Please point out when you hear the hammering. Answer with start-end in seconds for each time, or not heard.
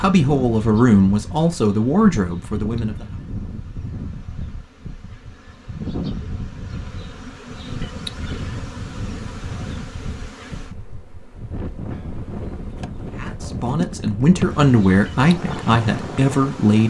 not heard.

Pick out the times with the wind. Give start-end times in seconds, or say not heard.
0.0-16.8.